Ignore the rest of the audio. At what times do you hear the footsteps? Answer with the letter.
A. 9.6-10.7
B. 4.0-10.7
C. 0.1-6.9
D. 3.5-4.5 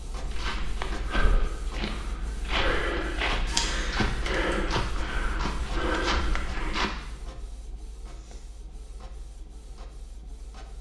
C.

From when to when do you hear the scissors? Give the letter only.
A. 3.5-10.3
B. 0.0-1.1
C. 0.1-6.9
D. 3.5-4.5
D.